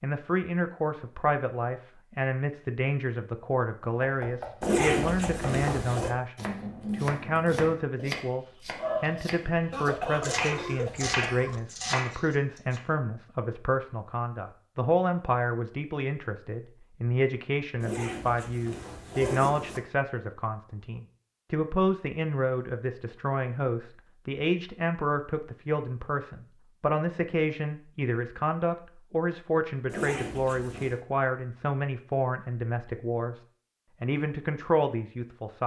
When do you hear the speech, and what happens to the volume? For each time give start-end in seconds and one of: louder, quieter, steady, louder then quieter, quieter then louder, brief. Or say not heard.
0.0-33.4 steady
34.0-35.6 brief.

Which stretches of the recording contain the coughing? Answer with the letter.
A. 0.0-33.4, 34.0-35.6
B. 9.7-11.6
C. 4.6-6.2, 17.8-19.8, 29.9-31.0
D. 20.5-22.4
B.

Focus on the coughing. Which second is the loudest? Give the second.
10 s.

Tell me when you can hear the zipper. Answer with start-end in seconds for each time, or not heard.
4.6-6.2, 17.8-19.8, 29.9-31.0.